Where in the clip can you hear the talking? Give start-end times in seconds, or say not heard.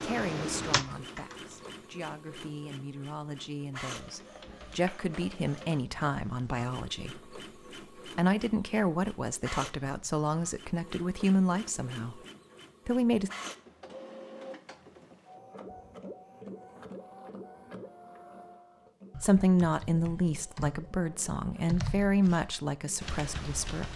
0.0-7.2, 8.1-12.2, 12.8-13.3, 19.2-23.9.